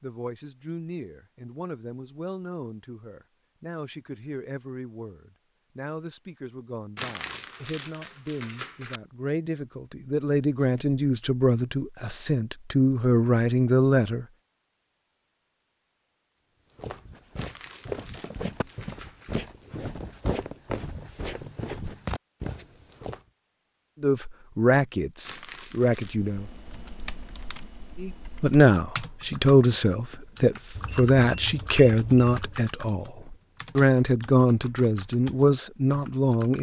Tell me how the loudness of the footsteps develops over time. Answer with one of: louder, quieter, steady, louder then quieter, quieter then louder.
steady.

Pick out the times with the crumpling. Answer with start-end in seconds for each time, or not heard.
7.0-9.0, 17.4-19.4, 25.2-26.2.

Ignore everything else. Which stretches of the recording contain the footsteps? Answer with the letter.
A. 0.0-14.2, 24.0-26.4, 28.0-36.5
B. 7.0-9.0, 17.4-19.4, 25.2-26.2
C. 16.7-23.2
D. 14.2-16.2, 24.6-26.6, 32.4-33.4
C.